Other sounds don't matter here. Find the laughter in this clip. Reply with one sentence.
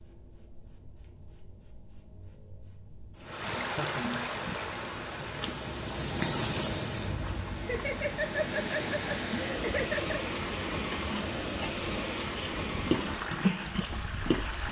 The laughter can be heard from 3.5 to 4.2 s and from 7.6 to 10.2 s.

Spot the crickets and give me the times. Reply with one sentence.
You can hear the crickets from 0.0 to 14.6 s.